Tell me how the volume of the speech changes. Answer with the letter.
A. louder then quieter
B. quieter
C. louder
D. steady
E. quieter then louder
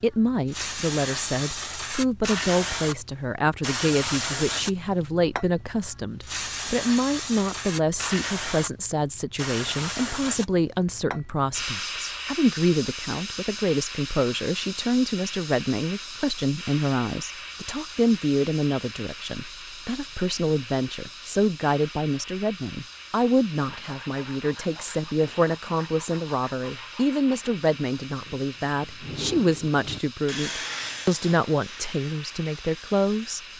D.